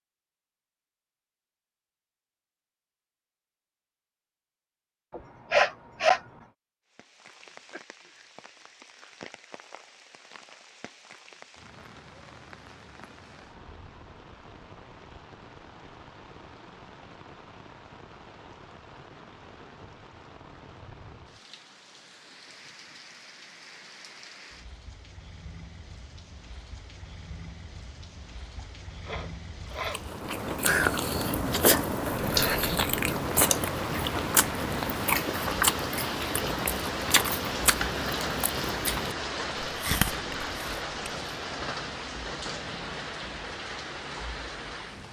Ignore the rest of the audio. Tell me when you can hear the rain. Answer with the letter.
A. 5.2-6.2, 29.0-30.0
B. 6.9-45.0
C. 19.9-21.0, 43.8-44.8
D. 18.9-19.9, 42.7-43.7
B.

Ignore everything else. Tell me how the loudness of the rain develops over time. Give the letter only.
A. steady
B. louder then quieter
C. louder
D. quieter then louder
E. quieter
C.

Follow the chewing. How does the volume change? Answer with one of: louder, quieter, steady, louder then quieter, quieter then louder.
quieter.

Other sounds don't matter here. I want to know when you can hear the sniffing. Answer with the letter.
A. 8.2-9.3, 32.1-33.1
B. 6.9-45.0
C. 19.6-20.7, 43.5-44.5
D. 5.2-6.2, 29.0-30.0
D.